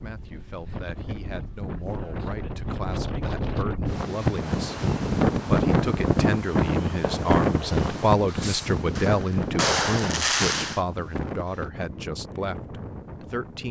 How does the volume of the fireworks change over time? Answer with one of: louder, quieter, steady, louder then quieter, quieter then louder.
louder.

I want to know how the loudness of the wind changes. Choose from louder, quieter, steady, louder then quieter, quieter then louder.
louder then quieter.